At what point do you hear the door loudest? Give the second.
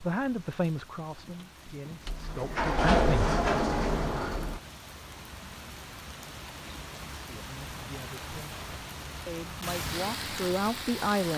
3 s.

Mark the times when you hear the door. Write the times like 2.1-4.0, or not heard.
2.0-4.6.